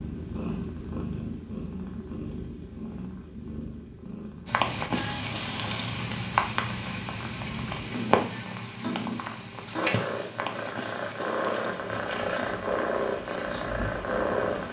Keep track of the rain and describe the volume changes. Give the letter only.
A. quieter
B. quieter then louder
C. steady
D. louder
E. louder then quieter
A.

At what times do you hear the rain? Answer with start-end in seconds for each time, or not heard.
4.5-14.6.